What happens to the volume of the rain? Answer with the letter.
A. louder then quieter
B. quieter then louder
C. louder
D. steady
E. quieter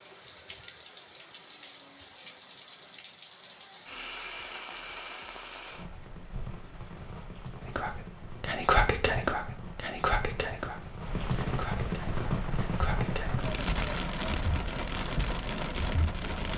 C.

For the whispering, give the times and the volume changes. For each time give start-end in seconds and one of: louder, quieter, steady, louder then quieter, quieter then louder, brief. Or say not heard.
7.7-13.4 quieter.